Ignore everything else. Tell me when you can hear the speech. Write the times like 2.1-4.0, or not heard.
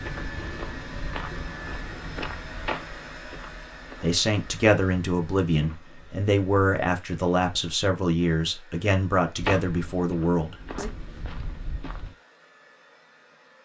4.0-10.9.